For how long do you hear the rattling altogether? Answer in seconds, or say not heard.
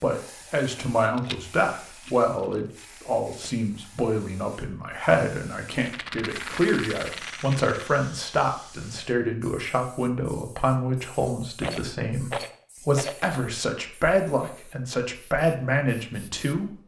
6 s.